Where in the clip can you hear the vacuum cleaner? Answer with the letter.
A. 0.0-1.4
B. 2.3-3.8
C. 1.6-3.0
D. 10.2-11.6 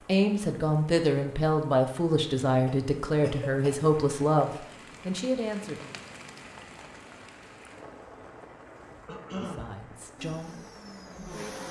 D.